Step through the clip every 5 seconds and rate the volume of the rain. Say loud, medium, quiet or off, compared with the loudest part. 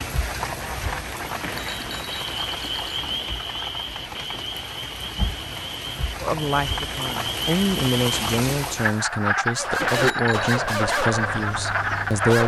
loud, loud, off.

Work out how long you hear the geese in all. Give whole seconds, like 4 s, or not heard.
2 s.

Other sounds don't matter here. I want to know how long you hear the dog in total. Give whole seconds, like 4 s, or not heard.
3 s.